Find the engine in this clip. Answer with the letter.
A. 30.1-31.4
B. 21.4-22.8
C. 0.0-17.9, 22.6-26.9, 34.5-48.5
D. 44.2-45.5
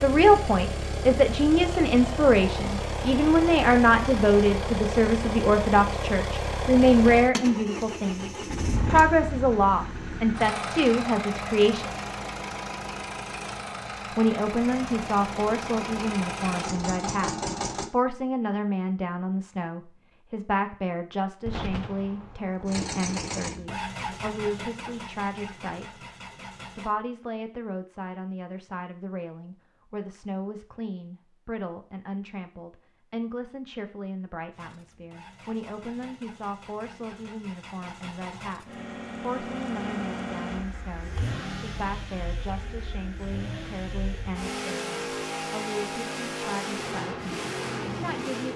C.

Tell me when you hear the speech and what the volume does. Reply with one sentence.
You can hear the speech from 0.0 to 11.9 s, at a steady volume; from 14.2 to 26.0 s, getting quieter; from 26.8 to 47.1 s, at a steady volume; and briefly from 48.0 to 48.5 s.